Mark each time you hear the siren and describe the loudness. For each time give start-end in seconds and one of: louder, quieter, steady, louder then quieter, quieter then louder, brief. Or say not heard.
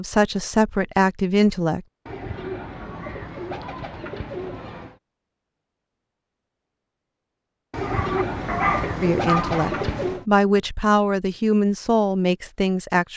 not heard.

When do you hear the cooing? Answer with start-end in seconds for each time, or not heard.
2.0-5.0, 7.7-10.2.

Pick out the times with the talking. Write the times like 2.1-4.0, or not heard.
0.0-1.9, 9.0-13.1.